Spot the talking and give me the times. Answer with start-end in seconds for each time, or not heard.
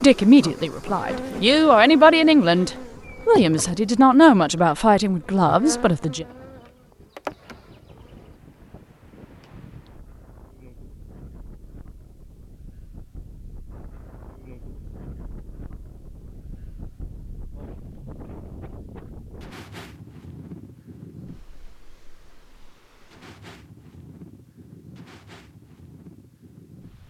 0.0-6.2.